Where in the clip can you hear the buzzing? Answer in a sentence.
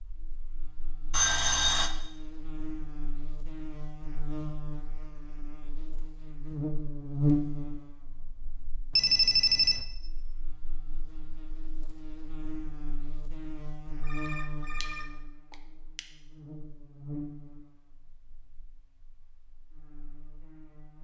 You can hear the buzzing from 0.0 to 20.9 s.